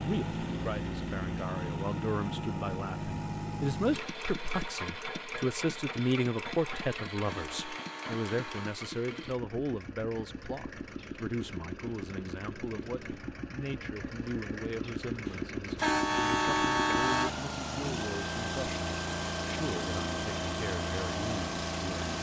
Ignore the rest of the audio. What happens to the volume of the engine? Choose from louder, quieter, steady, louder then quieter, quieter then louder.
quieter then louder.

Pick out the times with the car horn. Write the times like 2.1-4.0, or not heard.
7.2-8.8, 15.8-17.3.